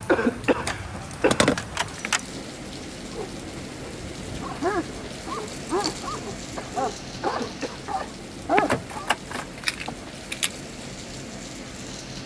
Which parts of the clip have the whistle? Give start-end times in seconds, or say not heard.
not heard.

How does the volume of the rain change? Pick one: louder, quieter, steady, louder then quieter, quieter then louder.
steady.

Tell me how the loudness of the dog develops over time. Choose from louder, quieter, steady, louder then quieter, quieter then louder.
louder.